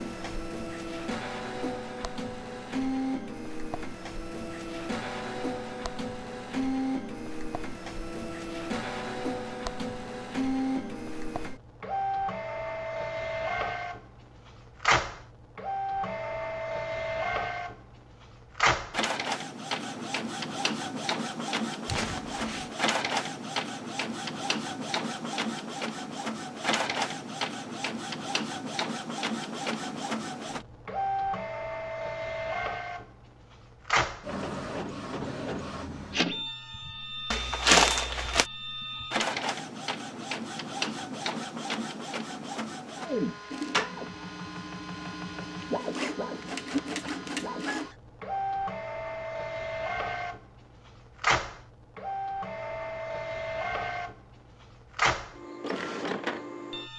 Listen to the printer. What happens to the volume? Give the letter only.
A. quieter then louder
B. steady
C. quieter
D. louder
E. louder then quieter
B.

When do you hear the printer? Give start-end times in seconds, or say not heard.
0.0-56.9.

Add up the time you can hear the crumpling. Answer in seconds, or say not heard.
2 s.